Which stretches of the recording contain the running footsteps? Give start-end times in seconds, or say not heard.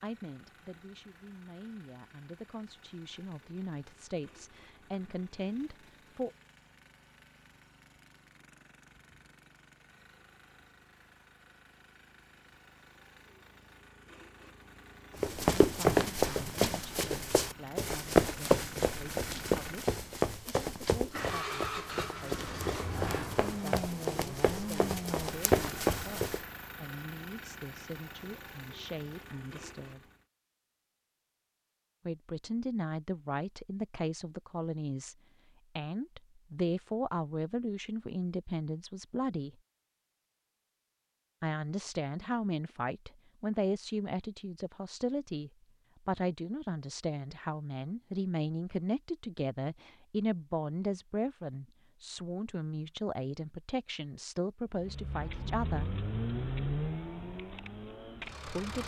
15.2-26.4.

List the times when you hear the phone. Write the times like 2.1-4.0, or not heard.
not heard.